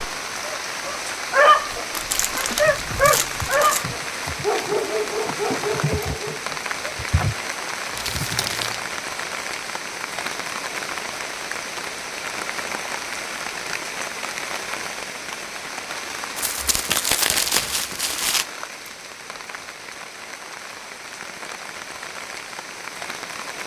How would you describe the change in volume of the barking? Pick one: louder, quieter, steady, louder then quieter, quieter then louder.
quieter.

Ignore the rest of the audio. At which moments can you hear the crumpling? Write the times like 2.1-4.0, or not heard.
1.9-3.9, 8.0-8.8, 16.4-18.4.